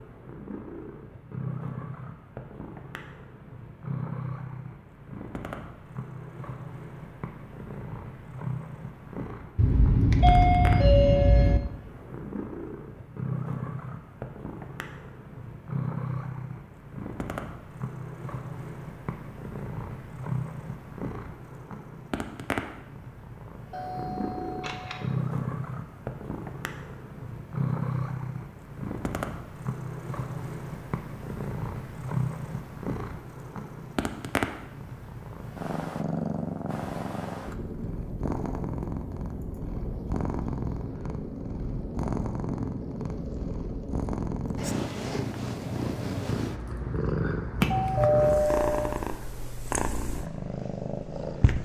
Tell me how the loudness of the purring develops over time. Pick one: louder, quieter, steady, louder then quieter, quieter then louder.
louder.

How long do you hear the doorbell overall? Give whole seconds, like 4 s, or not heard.
5 s.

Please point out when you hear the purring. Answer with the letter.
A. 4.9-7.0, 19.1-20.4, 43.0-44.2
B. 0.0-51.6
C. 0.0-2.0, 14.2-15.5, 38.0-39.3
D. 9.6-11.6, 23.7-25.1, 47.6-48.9
B.